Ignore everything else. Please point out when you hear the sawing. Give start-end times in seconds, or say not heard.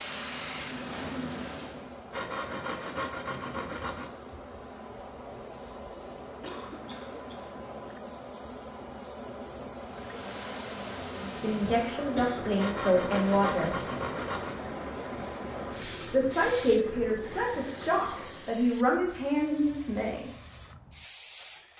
2.1-4.1, 12.6-14.6.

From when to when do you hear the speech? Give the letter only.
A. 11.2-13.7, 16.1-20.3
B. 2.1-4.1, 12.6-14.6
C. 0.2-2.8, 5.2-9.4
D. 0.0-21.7
A.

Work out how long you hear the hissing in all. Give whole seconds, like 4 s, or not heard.
22 s.